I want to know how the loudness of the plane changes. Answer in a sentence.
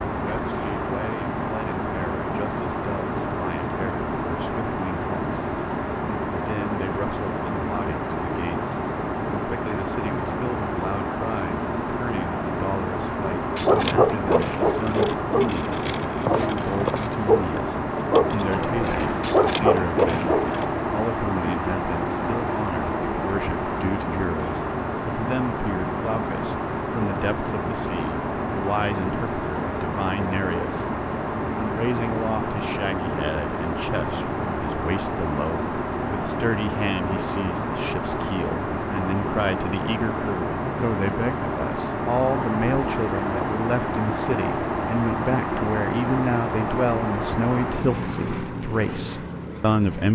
The volume of the plane stays about the same.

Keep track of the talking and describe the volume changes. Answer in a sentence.
The volume of the talking goes up.